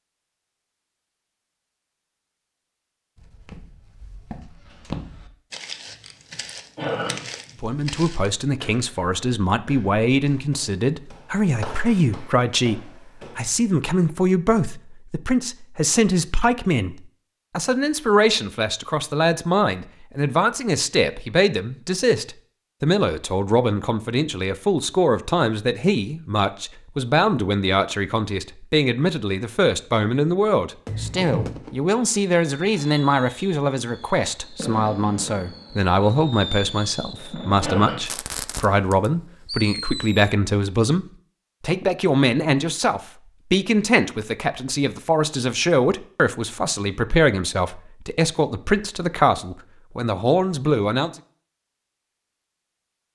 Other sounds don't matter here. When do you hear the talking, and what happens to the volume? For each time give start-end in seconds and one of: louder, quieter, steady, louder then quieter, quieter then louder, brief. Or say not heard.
7.6-51.1 steady.